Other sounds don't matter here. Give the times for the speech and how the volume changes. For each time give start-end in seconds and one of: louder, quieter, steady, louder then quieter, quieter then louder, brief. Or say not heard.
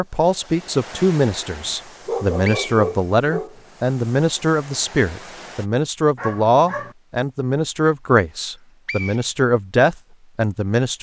0.0-10.9 steady.